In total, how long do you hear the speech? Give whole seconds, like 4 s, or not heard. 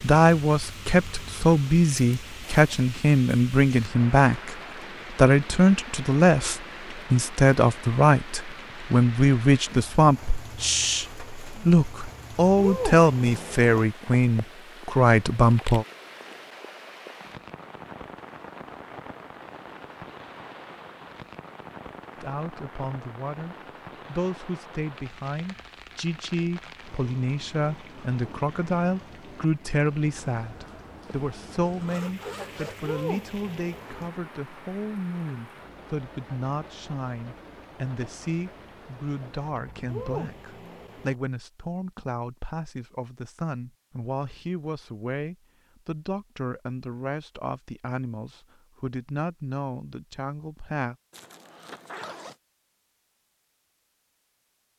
45 s.